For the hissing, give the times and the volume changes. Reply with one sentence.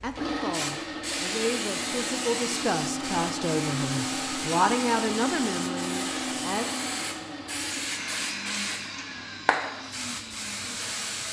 The hissing can be heard from 0.0 to 11.2 s, at a steady volume.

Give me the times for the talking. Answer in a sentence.
The talking can be heard from 0.0 to 6.7 s.